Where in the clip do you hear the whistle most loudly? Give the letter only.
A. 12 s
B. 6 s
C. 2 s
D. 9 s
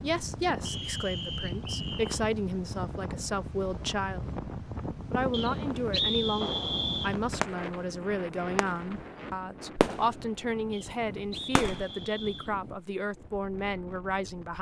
B.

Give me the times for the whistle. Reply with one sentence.
You can hear the whistle from 0.7 to 2.2 s, from 5.3 to 7.2 s and from 10.7 to 12.6 s.